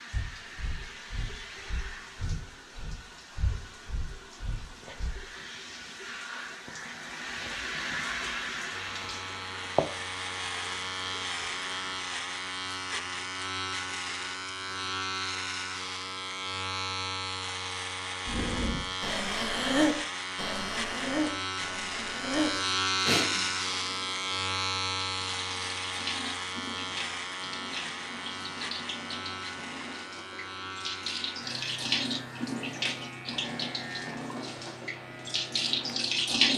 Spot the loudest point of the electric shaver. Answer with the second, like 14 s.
23 s.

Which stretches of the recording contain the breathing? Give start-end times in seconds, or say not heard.
0.1-5.2, 18.2-23.4.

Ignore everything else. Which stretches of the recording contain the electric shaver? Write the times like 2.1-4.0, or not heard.
8.7-36.5.